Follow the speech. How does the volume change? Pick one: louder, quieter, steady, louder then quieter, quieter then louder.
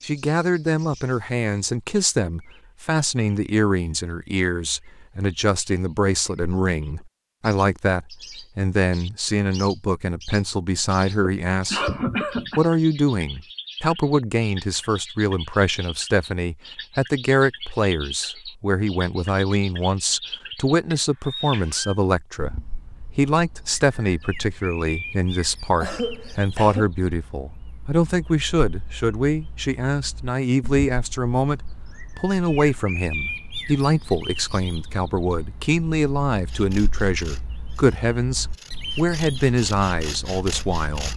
steady.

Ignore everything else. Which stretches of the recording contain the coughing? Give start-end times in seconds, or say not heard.
11.2-12.7, 25.8-26.9.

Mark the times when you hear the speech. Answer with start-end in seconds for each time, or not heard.
0.0-11.8, 12.6-41.1.